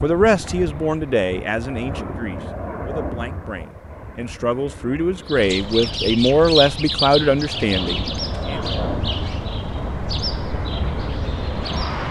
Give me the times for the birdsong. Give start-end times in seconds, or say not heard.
5.2-12.0.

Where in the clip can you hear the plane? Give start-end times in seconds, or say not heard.
0.0-12.0.